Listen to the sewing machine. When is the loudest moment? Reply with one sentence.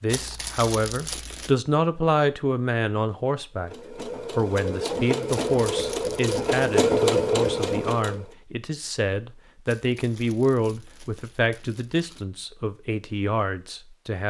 The volume of the sewing machine peaks at 7 seconds.